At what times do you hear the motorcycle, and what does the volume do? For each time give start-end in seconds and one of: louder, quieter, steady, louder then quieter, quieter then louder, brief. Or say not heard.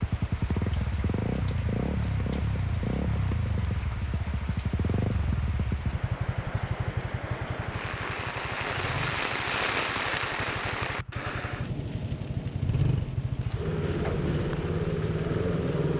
0.0-15.9 quieter then louder.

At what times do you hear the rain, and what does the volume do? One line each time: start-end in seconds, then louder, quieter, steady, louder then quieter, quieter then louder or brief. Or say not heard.
0.0-15.9 louder then quieter.